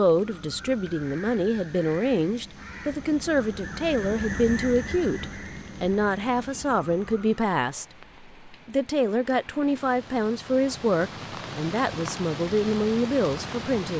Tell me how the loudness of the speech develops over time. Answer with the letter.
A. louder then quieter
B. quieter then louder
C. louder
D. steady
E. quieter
D.